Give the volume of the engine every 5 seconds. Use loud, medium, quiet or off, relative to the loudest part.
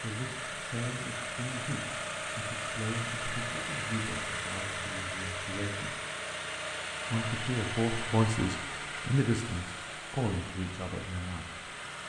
loud, loud, medium.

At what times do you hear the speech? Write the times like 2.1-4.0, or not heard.
0.0-5.9, 7.1-11.6.